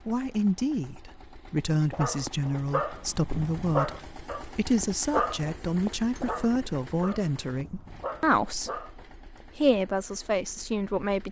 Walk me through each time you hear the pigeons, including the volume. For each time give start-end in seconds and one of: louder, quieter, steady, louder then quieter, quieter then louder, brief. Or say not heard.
not heard.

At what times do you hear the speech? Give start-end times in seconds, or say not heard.
0.1-11.2.